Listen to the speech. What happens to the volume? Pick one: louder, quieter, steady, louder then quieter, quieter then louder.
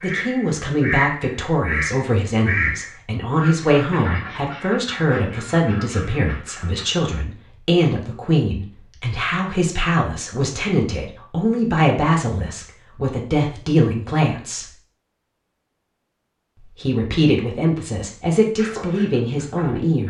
steady.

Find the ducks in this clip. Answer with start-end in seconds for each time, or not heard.
0.0-7.2, 18.6-20.0.